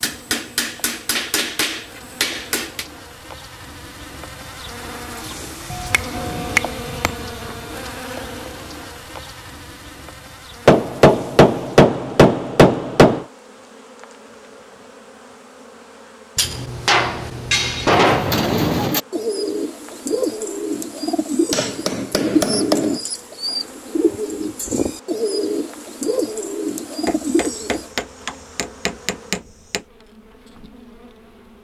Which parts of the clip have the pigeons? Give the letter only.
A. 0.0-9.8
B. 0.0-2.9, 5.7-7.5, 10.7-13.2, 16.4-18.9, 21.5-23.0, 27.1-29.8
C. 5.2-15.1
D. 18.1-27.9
D.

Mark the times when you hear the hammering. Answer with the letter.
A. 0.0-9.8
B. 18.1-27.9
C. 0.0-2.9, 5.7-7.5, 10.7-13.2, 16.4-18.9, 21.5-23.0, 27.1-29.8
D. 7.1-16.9
C.